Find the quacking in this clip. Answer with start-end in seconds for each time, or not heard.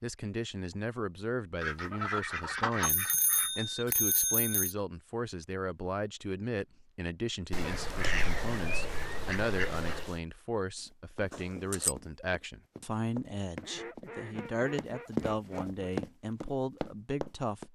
1.6-3.5, 7.5-10.2, 13.6-15.8.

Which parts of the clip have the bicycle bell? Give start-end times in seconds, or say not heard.
2.8-4.8, 11.3-11.9.